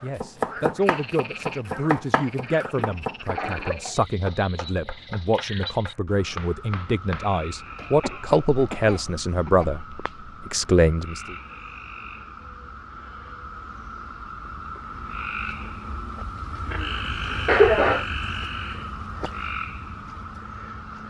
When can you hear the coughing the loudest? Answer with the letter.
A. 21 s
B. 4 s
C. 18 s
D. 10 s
C.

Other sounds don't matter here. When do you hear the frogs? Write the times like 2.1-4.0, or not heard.
0.0-21.0.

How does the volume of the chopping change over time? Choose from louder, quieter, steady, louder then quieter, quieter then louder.
quieter.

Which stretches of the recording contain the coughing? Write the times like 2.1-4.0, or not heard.
2.8-4.0, 7.7-9.7, 17.4-18.1.